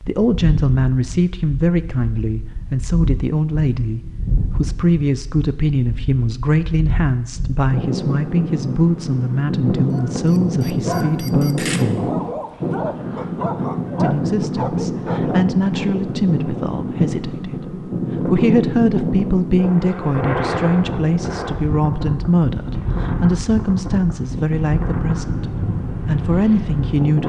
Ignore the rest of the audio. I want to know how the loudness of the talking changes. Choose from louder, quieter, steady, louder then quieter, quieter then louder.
steady.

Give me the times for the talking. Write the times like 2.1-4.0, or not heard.
0.0-12.1, 13.9-27.2.